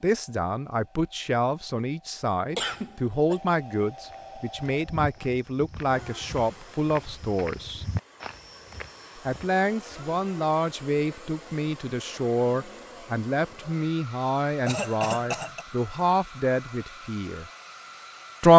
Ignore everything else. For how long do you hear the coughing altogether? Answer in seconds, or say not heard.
2 s.